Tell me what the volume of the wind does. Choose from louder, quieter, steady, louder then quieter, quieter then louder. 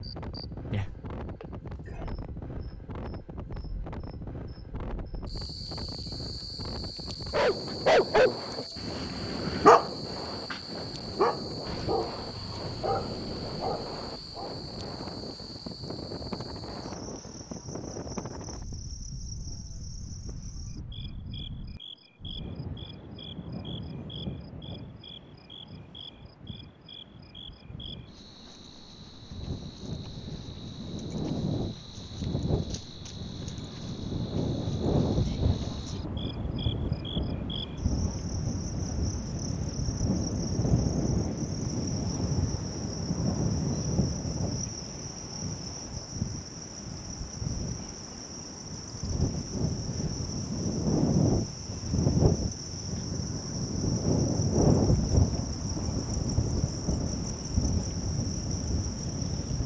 louder.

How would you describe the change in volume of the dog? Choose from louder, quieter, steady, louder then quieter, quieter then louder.
quieter.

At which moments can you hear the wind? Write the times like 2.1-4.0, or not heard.
0.0-59.6.